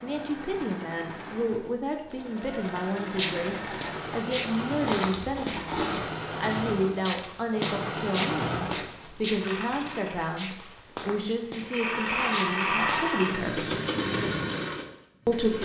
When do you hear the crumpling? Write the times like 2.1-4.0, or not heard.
4.8-6.0, 9.0-10.0.